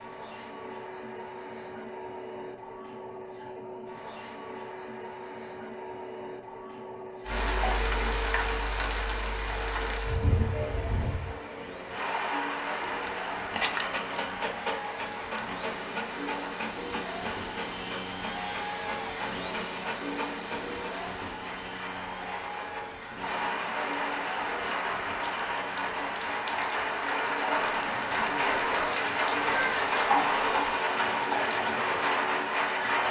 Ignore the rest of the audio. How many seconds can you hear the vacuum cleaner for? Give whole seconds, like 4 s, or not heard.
33 s.